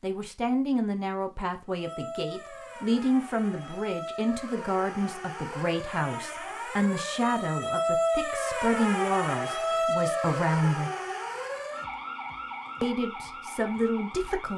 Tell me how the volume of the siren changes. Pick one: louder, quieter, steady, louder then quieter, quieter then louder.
louder then quieter.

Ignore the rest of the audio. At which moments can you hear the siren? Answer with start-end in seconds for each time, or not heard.
1.6-14.5.